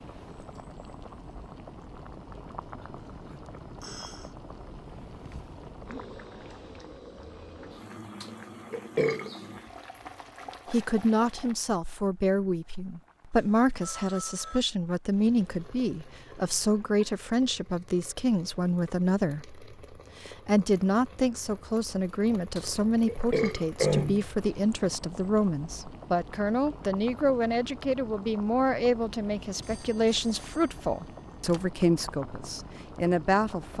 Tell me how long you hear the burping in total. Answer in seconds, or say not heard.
3 s.